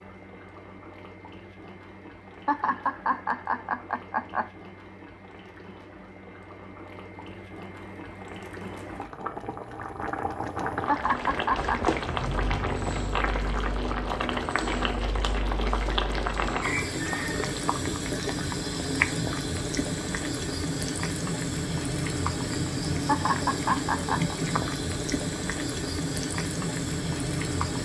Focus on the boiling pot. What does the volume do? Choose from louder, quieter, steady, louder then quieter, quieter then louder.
louder.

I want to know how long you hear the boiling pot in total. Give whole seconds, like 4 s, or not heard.
28 s.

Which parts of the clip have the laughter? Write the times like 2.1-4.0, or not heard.
2.5-4.5, 10.8-11.8, 23.1-24.4.